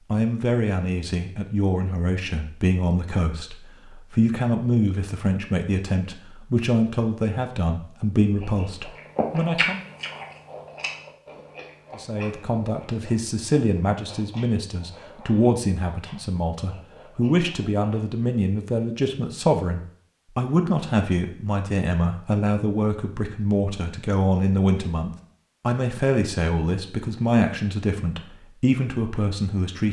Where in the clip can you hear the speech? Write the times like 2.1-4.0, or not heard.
0.1-9.8, 11.9-29.8.